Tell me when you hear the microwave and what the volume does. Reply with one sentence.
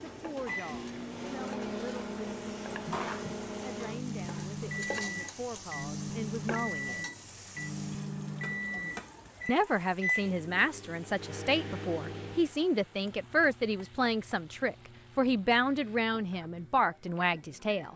The microwave can be heard from 0.0 to 17.9 s, getting quieter.